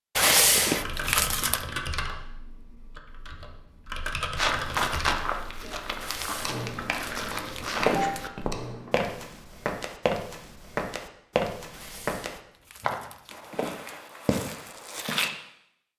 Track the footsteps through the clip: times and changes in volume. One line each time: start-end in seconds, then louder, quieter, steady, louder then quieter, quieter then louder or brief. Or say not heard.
4.3-15.3 steady.